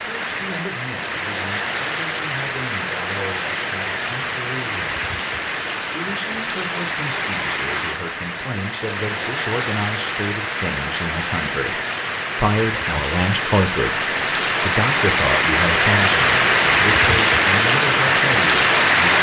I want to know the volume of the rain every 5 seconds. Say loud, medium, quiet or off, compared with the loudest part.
medium, medium, medium, loud.